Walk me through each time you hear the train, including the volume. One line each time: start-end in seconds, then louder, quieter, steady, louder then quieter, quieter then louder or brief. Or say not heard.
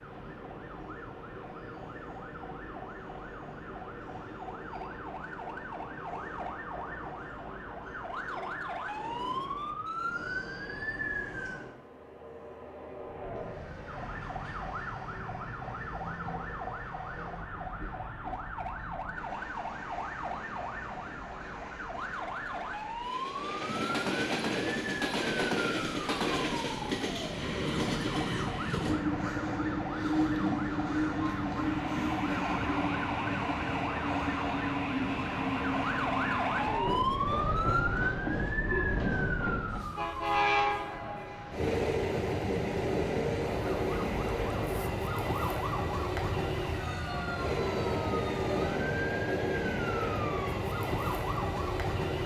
0.0-52.2 louder.